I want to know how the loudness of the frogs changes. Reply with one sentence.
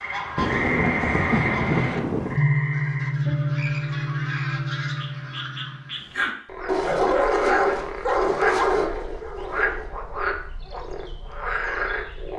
The loudness of the frogs goes down, then up.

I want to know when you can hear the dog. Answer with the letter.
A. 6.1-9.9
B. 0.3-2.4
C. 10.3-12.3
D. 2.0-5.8
A.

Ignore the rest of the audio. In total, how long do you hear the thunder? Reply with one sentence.
You can hear the thunder for 2 seconds altogether.